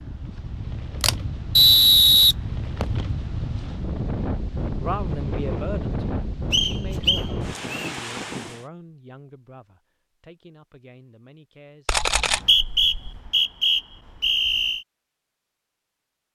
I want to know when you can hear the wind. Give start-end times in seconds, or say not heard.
0.0-8.7.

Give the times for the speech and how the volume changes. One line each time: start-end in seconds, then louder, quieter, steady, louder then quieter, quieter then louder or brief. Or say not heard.
4.8-12.0 quieter.